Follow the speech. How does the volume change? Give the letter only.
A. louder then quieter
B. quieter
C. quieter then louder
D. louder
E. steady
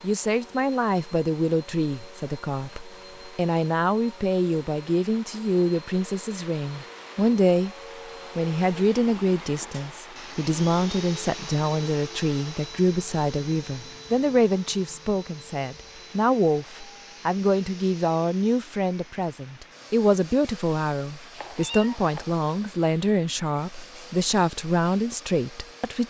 E.